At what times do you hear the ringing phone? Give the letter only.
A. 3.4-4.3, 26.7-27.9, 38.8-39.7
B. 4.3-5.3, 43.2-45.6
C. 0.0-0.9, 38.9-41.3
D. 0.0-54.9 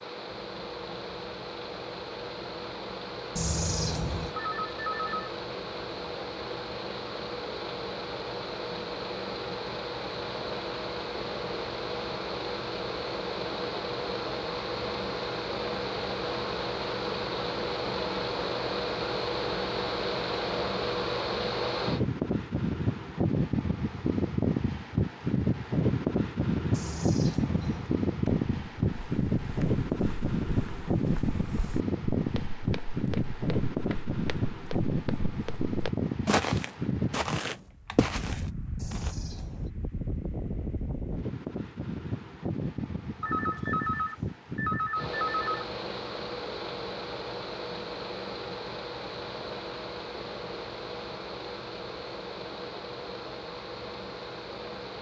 B.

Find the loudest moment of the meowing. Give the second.
4 s.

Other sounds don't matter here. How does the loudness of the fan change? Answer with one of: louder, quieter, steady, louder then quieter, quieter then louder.
louder then quieter.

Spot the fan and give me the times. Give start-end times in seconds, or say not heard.
0.0-54.9.